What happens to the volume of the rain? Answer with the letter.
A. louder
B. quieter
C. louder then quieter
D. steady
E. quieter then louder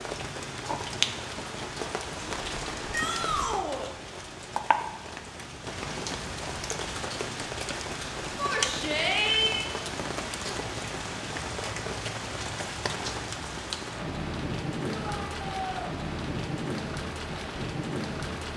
D.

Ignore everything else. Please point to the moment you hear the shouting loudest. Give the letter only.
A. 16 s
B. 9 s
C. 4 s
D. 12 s
B.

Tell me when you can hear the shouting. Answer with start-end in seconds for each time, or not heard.
2.9-3.9, 8.3-9.7, 14.8-15.9.